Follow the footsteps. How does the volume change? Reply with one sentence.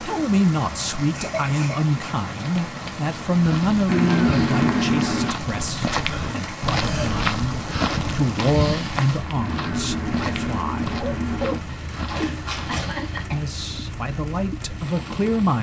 The volume of the footsteps goes up, then down.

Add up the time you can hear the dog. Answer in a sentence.
The dog can be heard for 2 seconds in total.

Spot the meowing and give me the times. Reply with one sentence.
The meowing can be heard from 3.9 to 5.3 s and from 9.4 to 11.6 s.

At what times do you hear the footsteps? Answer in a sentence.
You can hear the footsteps from 3.3 to 13.2 s.